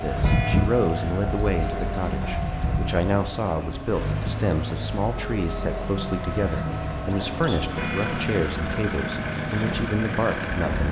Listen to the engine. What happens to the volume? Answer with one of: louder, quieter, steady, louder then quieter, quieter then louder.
steady.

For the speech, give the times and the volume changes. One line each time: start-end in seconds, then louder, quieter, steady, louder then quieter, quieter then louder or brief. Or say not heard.
0.0-10.8 steady.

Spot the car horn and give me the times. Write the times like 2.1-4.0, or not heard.
0.2-0.7, 7.8-8.2.